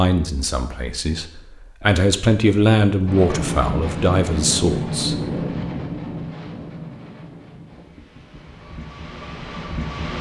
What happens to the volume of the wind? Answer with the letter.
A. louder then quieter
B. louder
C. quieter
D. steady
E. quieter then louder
E.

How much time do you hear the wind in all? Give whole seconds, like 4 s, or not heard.
7 s.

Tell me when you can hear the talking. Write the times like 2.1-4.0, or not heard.
0.0-5.2.